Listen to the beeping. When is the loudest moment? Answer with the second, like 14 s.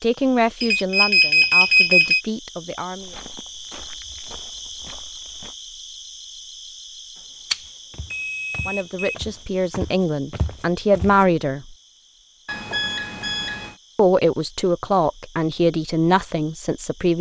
2 s.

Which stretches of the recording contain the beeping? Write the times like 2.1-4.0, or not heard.
0.6-2.2, 7.5-9.2, 12.4-13.8.